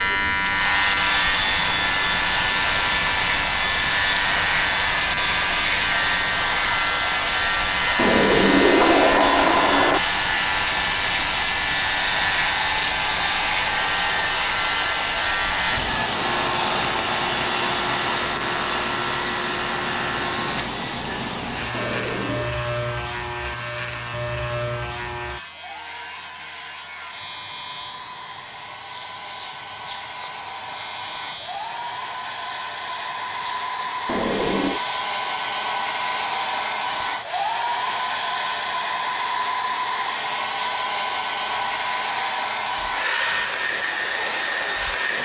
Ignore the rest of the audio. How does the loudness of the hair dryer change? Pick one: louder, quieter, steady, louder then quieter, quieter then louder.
quieter then louder.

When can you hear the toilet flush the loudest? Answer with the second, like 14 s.
9 s.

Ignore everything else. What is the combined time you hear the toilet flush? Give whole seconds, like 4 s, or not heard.
4 s.